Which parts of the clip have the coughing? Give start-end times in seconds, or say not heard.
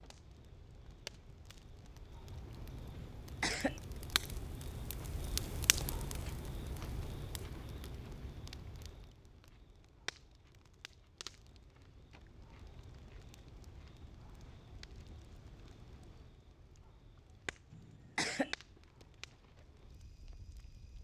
3.0-3.8, 17.7-18.6.